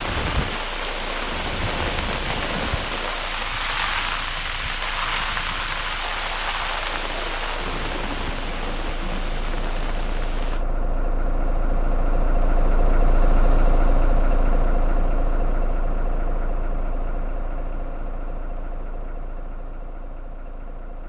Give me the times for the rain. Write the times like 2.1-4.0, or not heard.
0.0-10.7.